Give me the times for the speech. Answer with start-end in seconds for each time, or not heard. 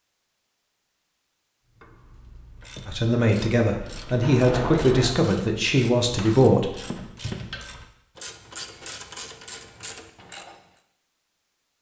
2.9-6.7.